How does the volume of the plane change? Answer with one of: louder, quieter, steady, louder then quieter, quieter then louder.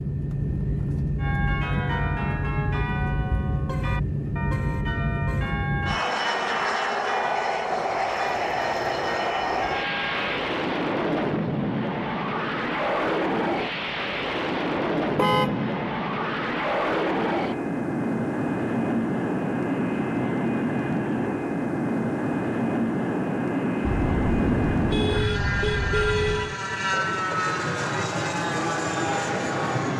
steady.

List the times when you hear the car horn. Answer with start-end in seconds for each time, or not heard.
3.5-5.5, 15.2-15.8, 23.9-26.6.